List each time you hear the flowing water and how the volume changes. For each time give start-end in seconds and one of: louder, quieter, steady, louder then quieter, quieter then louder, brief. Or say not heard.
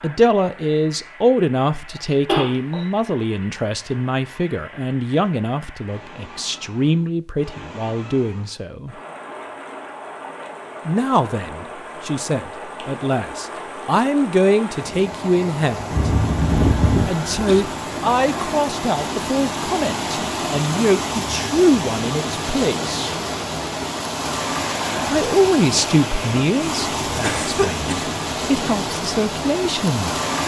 0.0-30.4 louder.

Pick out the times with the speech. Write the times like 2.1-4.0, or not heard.
0.0-8.9, 10.8-16.1, 17.1-23.1, 25.1-30.1.